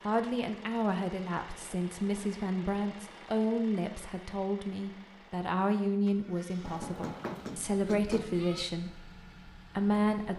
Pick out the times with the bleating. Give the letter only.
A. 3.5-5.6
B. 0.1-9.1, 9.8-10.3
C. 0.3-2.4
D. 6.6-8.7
D.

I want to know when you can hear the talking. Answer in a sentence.
The talking can be heard from 0.1 to 9.1 s and from 9.8 to 10.3 s.